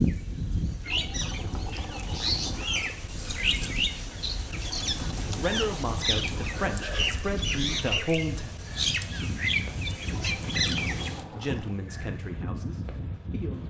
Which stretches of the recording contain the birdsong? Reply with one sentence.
You can hear the birdsong from 0.0 to 11.2 s.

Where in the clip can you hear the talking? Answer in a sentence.
The talking can be heard from 5.3 to 8.5 s and from 11.3 to 13.6 s.